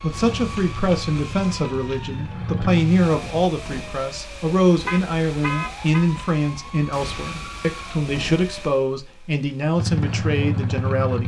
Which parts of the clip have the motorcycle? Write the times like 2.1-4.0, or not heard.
0.1-3.5, 9.8-11.2.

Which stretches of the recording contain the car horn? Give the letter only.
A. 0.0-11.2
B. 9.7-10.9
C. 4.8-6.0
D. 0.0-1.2
C.